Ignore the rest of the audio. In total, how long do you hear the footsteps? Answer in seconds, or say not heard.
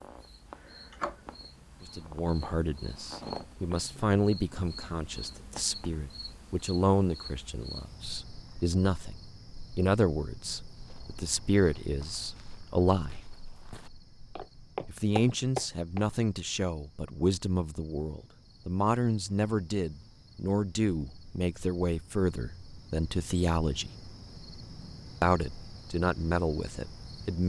5 s.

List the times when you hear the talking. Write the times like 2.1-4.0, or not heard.
1.8-13.2, 14.8-23.9, 25.2-27.4.